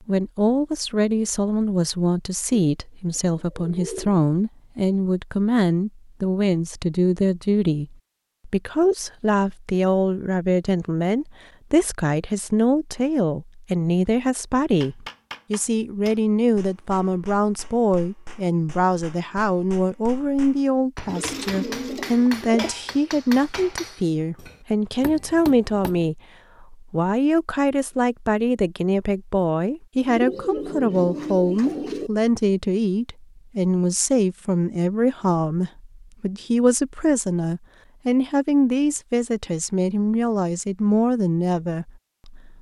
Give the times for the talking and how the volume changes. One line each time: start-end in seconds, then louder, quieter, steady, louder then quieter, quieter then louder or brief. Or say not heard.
0.1-42.5 steady.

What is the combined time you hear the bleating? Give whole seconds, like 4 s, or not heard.
not heard.